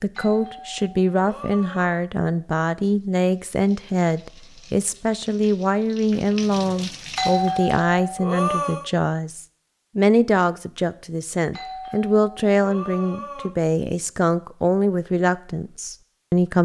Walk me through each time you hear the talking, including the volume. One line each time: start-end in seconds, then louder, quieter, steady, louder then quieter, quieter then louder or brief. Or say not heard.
0.0-16.6 steady.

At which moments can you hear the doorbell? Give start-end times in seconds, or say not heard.
0.1-2.0, 7.2-8.9, 11.5-13.5.